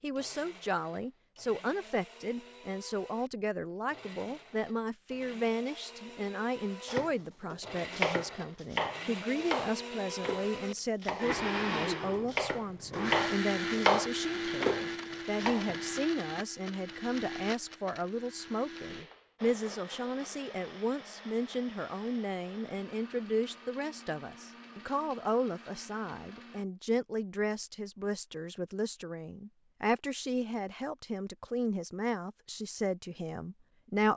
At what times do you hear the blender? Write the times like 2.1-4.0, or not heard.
0.0-26.6.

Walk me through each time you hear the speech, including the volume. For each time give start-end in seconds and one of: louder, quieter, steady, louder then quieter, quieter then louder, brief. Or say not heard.
0.0-34.1 steady.